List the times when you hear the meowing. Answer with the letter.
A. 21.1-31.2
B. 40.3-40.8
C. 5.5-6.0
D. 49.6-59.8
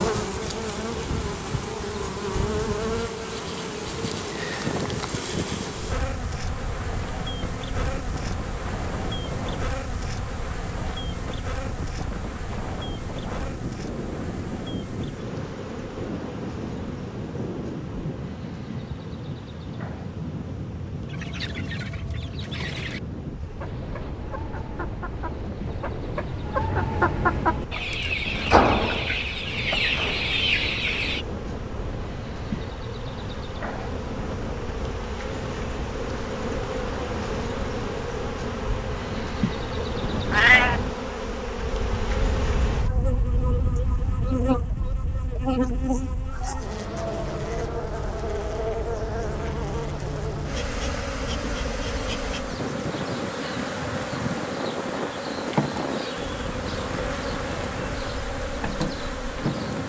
B.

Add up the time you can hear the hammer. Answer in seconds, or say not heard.
not heard.